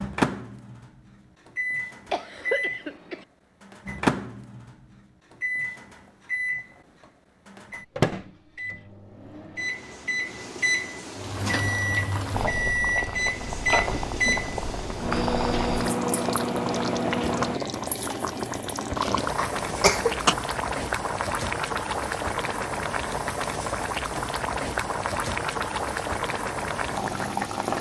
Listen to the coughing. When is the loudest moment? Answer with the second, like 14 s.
20 s.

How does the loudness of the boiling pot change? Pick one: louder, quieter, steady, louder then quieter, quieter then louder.
steady.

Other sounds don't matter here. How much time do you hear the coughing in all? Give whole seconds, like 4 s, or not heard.
2 s.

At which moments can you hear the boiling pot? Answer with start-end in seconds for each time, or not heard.
11.2-27.7.